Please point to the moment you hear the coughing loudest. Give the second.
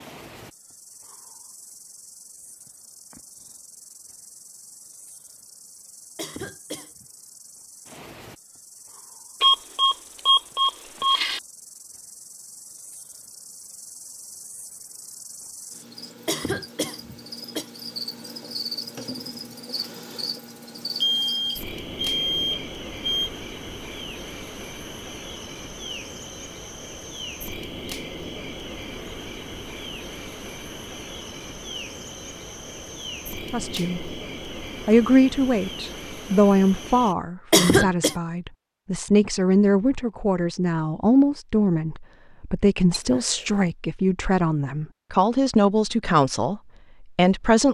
38 s.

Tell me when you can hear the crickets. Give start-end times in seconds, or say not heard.
0.0-37.1.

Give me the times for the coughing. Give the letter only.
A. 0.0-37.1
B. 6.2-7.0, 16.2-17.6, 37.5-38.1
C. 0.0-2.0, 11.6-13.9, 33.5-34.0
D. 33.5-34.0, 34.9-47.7
B.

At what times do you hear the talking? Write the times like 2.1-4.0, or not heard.
33.5-34.0, 34.9-47.7.